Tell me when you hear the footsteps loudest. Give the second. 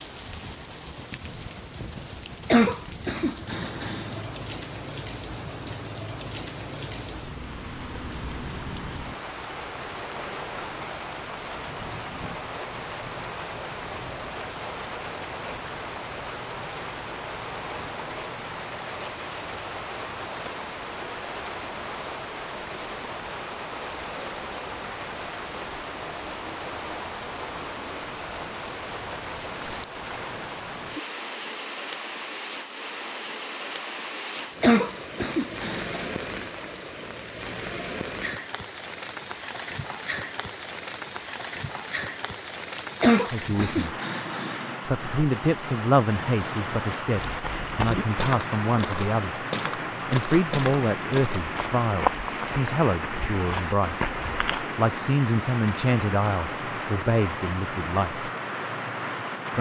52 s.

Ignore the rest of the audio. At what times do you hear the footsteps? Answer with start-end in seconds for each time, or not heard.
47.2-54.8.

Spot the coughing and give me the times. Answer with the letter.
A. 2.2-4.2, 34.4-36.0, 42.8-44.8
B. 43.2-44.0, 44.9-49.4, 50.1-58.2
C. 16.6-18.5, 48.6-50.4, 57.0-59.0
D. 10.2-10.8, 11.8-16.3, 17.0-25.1
A.